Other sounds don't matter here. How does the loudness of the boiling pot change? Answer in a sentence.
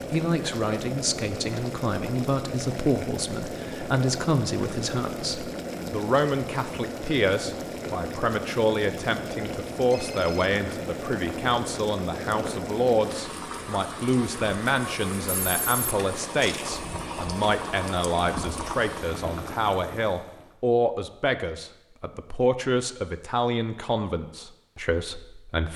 The volume of the boiling pot stays about the same.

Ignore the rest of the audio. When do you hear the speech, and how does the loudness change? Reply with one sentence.
You can hear the speech from 0.1 to 25.7 s, at a steady volume.